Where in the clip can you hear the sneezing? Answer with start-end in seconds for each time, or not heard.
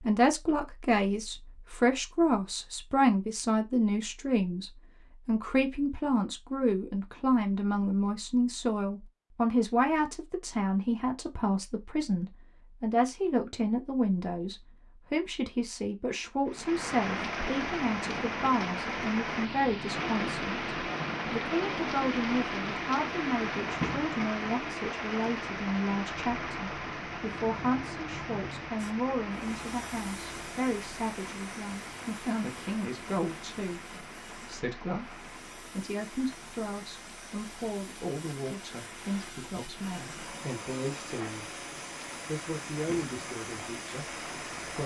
not heard.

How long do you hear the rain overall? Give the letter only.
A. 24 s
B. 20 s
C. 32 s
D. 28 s
D.